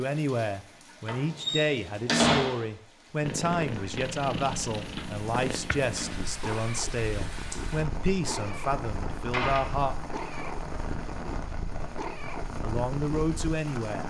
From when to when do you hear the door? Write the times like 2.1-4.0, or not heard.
1.1-2.6, 9.1-9.7.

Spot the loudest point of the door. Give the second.
2 s.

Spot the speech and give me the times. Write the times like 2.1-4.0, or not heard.
0.0-9.9, 12.6-14.0.